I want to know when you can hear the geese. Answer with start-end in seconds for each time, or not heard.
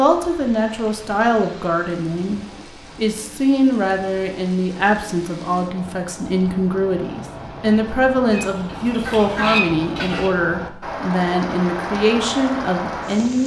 8.2-10.3.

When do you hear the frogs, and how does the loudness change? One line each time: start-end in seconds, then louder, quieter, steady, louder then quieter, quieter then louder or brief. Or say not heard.
not heard.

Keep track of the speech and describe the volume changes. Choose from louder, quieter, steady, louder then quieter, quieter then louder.
steady.